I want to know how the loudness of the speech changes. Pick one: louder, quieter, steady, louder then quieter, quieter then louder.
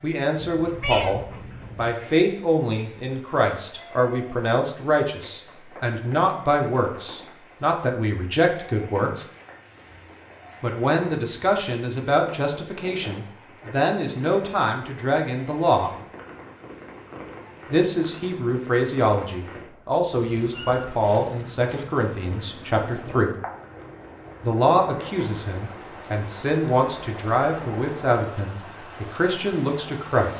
steady.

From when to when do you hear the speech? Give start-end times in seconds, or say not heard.
0.0-9.2, 10.6-15.9, 17.7-23.3, 24.4-30.3.